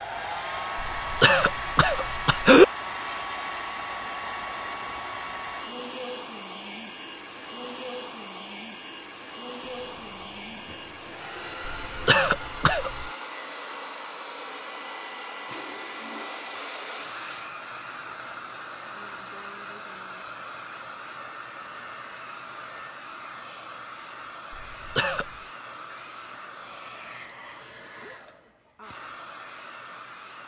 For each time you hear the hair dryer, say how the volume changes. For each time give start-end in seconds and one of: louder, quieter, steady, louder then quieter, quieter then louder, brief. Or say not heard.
0.0-30.4 quieter.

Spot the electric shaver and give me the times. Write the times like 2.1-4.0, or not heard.
not heard.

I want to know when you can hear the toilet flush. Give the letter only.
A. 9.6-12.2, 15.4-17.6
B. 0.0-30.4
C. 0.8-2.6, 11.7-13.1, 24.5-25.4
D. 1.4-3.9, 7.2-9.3
A.